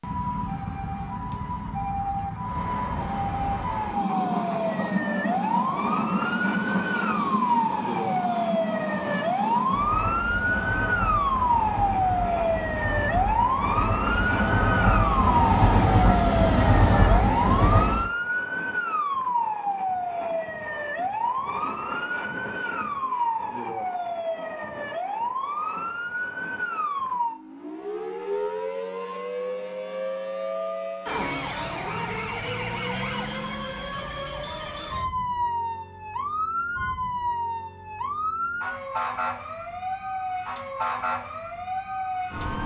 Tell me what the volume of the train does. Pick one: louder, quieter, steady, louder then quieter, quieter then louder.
louder.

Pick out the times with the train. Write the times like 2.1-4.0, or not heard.
2.4-18.1.